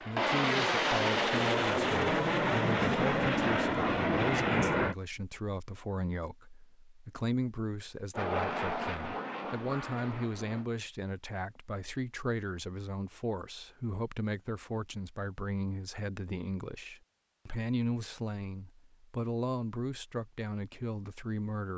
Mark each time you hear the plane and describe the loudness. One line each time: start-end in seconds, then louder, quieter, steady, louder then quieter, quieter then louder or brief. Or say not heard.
0.0-5.0 steady
8.1-10.7 brief.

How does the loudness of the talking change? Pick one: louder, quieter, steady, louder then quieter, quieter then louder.
steady.